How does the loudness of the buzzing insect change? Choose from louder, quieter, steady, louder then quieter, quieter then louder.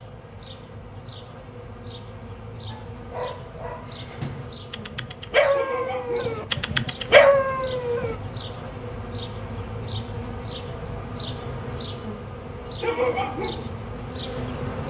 louder.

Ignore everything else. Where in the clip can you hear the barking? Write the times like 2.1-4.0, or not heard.
2.6-8.2.